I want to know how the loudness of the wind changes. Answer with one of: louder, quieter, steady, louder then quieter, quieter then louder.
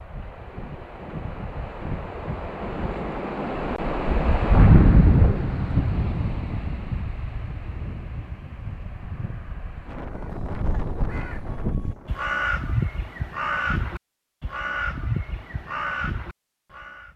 louder then quieter.